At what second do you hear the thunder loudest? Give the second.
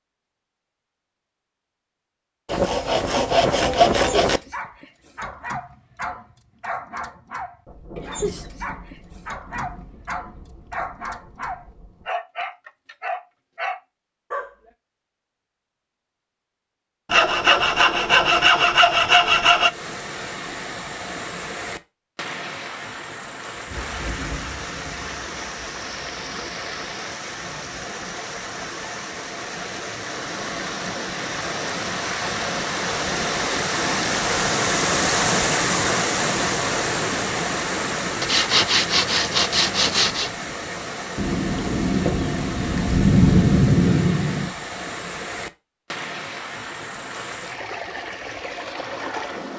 43 s.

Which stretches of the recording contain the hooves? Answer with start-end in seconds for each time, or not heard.
not heard.